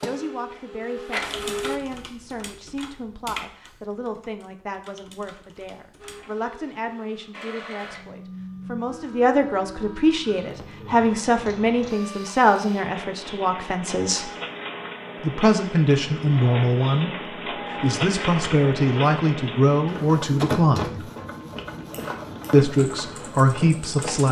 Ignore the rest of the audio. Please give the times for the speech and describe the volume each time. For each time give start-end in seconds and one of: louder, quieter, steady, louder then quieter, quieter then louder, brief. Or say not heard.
0.0-14.3 louder
15.2-21.1 steady
22.5-24.2 brief.